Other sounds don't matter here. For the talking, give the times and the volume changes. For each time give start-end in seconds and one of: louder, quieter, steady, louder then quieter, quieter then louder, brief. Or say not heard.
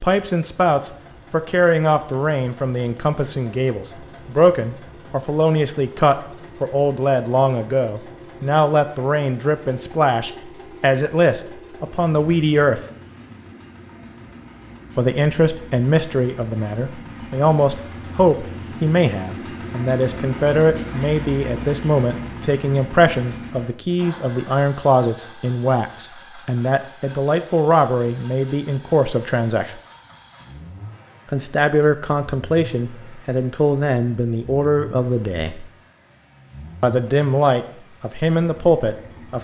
0.0-12.8 steady
14.9-29.8 steady
31.3-35.6 steady
36.8-39.3 brief.